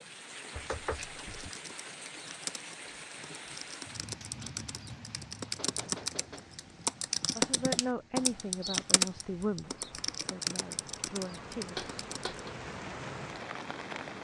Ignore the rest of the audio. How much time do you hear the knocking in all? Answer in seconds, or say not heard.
3 s.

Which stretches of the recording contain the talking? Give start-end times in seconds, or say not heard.
7.3-11.8.